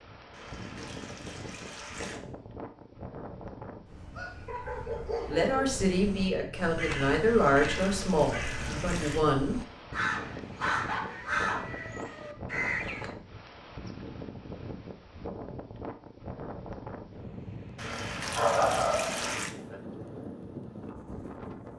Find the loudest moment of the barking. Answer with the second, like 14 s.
19 s.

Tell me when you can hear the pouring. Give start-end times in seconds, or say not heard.
0.3-2.2, 7.2-9.2, 17.8-19.6.